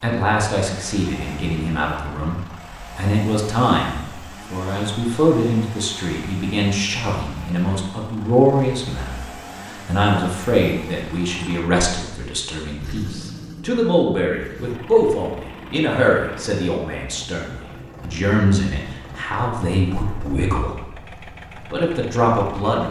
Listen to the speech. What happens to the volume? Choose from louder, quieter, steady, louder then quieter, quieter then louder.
steady.